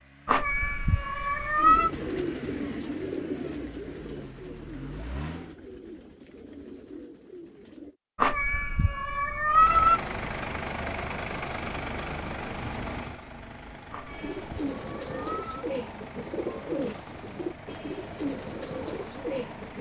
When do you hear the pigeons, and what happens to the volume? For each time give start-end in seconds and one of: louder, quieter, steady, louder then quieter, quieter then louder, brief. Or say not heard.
1.6-8.0 quieter
14.1-19.7 steady.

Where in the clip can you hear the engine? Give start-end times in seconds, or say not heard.
0.0-5.5, 9.4-19.7.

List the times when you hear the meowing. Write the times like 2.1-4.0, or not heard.
0.2-1.9, 8.2-10.0, 13.9-15.6.